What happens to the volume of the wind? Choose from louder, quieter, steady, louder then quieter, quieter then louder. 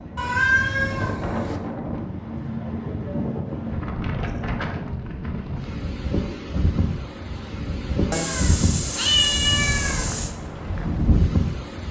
steady.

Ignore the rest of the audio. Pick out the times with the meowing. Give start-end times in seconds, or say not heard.
0.1-1.6, 8.1-10.3.